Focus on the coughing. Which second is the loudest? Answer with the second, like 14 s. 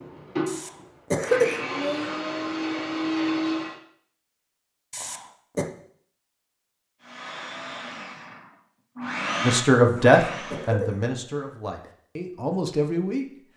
1 s.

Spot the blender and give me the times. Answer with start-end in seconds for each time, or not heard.
0.0-3.8, 7.0-10.7.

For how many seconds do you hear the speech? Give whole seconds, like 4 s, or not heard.
4 s.